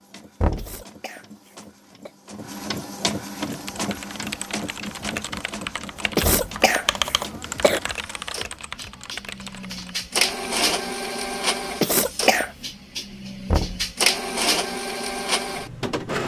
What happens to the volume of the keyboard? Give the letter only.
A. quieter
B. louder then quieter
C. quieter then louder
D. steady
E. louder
B.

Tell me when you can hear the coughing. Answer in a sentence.
You can hear the coughing from 0.6 to 2.1 s, from 6.2 to 7.8 s and from 11.8 to 12.5 s.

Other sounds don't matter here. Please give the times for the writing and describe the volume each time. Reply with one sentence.
The writing can't be heard in this clip.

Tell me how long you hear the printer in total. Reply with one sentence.
The printer can be heard for 16 seconds in total.